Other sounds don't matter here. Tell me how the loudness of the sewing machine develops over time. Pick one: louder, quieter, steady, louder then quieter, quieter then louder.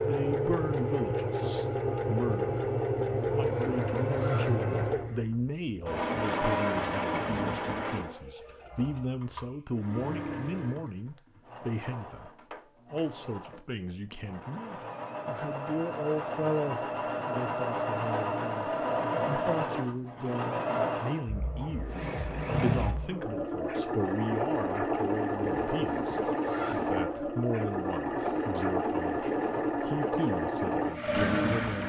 quieter then louder.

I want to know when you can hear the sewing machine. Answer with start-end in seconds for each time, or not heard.
0.0-31.8.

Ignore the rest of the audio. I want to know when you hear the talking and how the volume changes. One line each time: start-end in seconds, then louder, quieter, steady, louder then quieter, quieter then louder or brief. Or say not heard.
0.0-2.6 brief
3.4-31.8 steady.